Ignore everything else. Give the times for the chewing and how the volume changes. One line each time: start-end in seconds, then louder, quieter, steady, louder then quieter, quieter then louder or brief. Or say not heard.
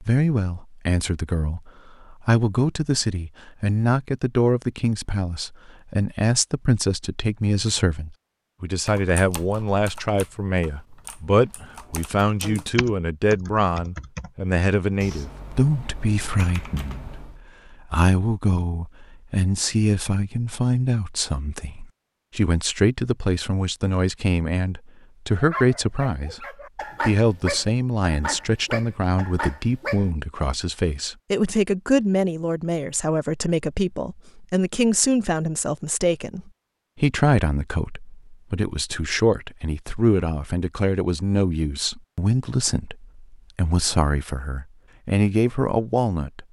not heard.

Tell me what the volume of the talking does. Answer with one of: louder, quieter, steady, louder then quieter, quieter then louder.
steady.